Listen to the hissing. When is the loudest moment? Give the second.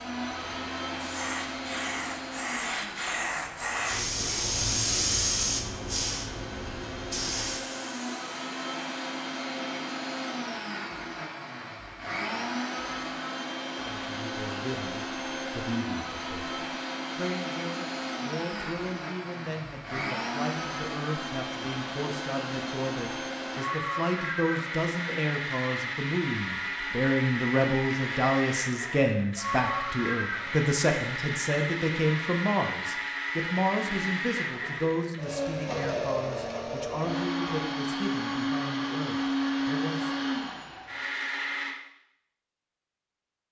5 s.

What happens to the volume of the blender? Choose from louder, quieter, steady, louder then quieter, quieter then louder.
louder.